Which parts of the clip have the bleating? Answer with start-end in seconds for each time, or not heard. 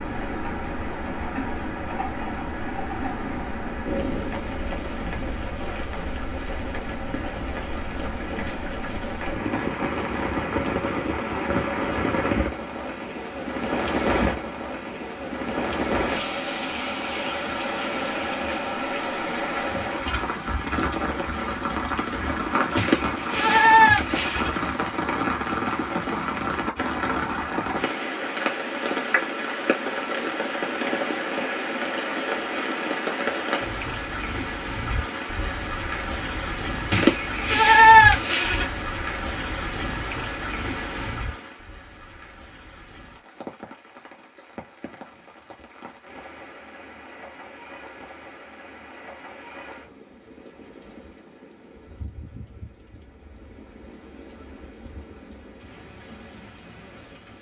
22.8-24.6, 36.9-38.6.